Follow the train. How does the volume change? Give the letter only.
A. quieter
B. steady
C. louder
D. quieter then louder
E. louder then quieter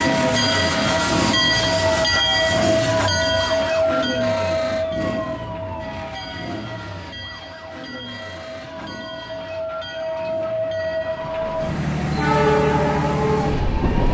D.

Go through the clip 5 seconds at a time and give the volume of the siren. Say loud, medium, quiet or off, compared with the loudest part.
loud, medium, medium.